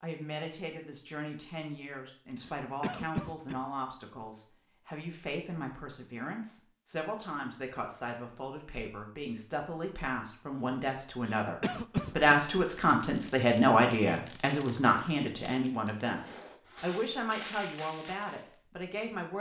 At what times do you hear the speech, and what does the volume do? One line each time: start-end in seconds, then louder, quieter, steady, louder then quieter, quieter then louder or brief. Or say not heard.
0.0-19.3 louder then quieter.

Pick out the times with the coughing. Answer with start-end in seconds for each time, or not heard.
2.5-3.6, 11.2-12.4.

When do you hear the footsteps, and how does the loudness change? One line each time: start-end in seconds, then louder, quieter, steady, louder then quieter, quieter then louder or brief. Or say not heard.
not heard.